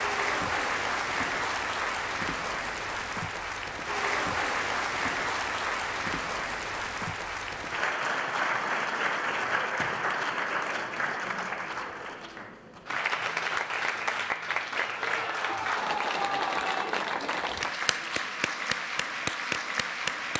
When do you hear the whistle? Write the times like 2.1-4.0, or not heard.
not heard.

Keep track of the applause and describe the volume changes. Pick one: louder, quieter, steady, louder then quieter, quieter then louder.
steady.